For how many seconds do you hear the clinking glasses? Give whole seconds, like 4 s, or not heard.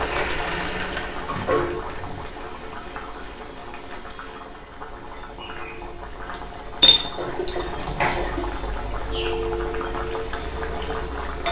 3 s.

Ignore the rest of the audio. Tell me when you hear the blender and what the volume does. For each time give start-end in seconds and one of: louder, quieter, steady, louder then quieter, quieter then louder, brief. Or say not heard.
0.0-4.7 quieter.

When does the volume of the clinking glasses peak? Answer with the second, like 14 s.
7 s.